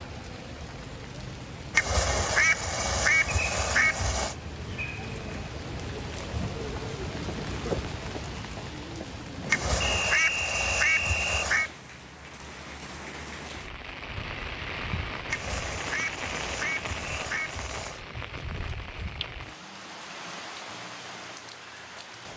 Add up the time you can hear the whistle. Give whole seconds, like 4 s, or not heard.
2 s.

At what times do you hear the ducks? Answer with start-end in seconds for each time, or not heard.
1.7-4.3, 9.4-11.7, 15.2-18.0.